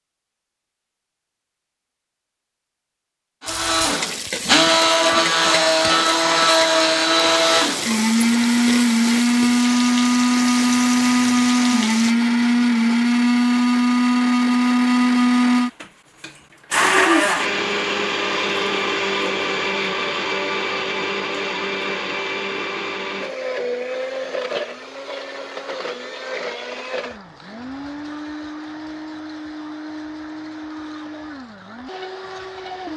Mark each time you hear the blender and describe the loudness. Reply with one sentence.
You can hear the blender from 3.4 to 32.9 s, getting quieter.